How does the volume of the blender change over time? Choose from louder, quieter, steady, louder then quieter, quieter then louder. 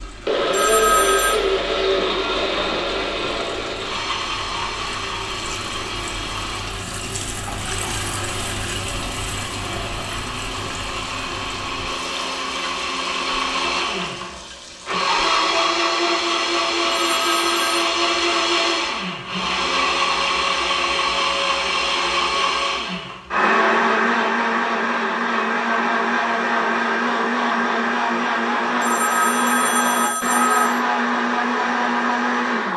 quieter then louder.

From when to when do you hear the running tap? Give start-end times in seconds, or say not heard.
0.0-15.8.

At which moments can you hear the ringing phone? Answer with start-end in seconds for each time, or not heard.
0.5-1.4, 16.9-17.6, 28.8-30.8.